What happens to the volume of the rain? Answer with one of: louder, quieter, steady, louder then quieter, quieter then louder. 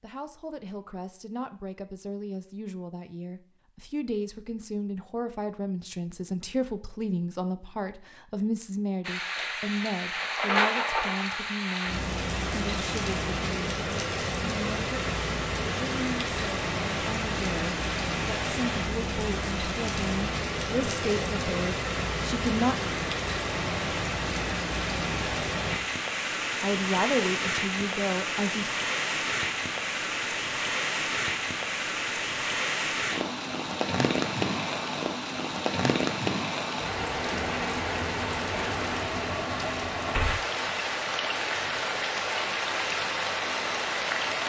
steady.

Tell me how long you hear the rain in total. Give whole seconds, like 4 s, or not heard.
35 s.